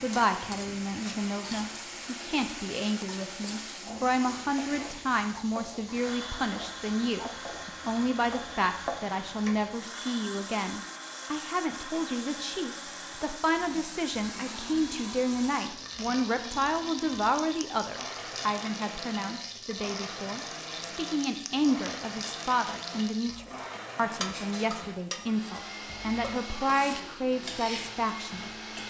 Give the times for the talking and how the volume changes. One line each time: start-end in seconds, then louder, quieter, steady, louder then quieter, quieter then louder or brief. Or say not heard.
0.0-28.8 steady.